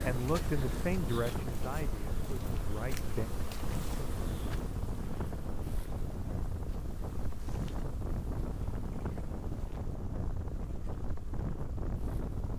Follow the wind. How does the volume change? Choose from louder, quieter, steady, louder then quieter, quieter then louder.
steady.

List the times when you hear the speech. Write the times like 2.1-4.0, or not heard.
0.0-3.3.